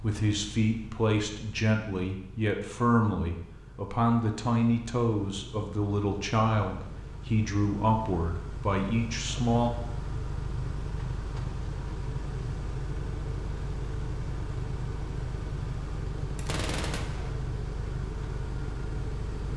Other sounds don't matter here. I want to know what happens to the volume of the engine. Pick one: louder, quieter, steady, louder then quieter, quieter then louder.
louder.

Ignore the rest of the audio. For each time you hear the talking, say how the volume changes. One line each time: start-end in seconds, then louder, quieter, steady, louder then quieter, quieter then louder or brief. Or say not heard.
0.0-9.7 steady.